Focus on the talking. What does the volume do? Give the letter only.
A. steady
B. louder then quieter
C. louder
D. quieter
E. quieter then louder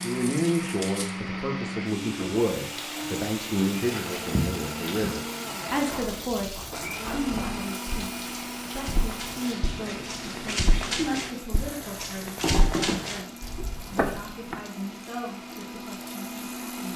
D.